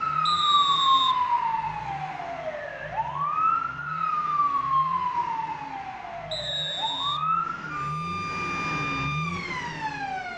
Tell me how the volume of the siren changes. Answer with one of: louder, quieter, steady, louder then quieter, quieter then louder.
quieter.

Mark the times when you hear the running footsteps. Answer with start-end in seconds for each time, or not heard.
not heard.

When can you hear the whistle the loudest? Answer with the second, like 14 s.
1 s.